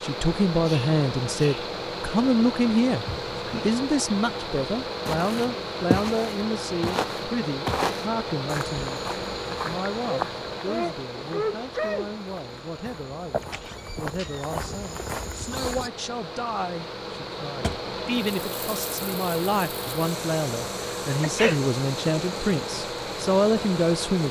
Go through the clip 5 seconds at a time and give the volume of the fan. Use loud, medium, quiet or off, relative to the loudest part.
loud, loud, medium, loud, loud.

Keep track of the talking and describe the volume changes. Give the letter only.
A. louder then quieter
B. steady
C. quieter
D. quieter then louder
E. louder
D.